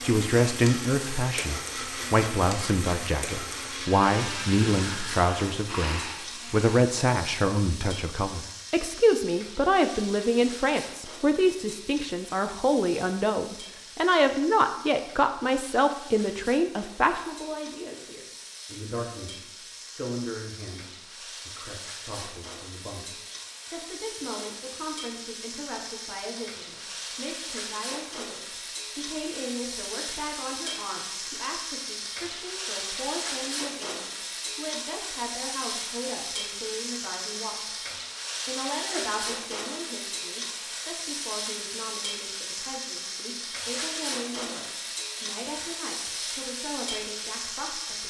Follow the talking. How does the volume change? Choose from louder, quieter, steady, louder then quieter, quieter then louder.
quieter.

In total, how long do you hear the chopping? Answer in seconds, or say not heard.
not heard.